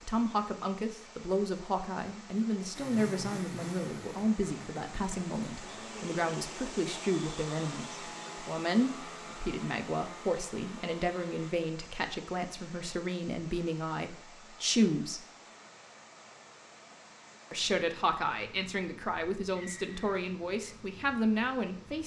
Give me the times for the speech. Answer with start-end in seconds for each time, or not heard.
0.0-15.2, 17.5-22.0.